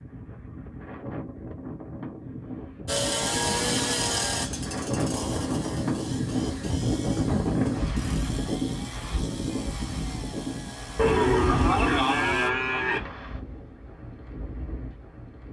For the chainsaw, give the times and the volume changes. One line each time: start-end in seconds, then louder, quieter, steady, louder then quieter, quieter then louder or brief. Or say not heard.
2.9-12.5 quieter.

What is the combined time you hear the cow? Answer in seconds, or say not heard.
2 s.